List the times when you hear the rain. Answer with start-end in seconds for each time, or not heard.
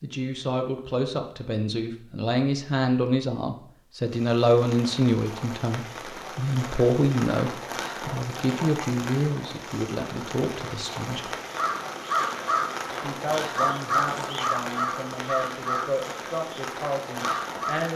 4.0-17.9.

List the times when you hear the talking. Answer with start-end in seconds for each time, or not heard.
0.0-11.3, 13.0-17.9.